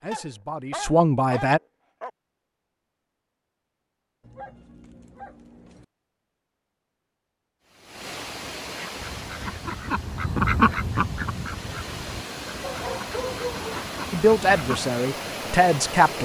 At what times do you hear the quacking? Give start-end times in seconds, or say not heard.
8.9-14.8.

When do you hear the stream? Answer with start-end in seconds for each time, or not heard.
7.6-16.2.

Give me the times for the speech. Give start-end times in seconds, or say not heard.
0.0-1.6, 14.1-16.2.